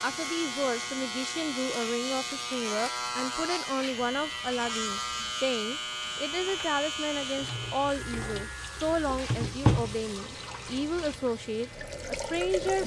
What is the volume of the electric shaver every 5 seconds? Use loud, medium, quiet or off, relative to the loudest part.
loud, loud, quiet.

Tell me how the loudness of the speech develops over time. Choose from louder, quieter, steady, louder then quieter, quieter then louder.
steady.